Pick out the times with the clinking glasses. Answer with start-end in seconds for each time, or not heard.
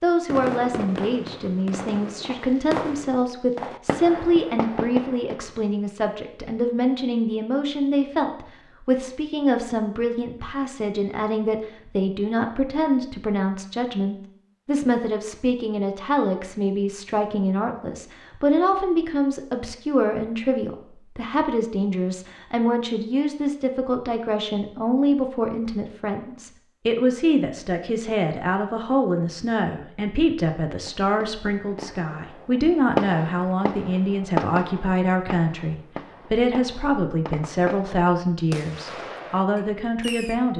not heard.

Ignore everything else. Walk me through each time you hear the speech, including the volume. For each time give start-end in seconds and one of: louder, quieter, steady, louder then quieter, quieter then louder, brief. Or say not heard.
0.0-40.5 steady.